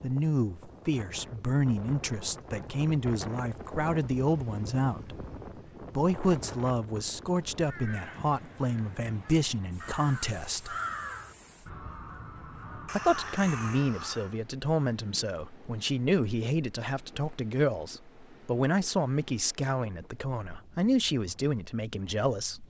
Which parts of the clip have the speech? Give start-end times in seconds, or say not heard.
0.0-5.2, 6.0-10.8, 12.9-22.6.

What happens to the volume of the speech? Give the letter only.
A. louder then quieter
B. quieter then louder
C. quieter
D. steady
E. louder
D.